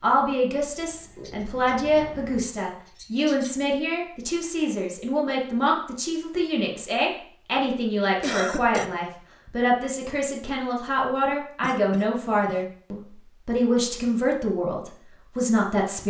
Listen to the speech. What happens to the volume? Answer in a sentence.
The volume of the speech stays about the same.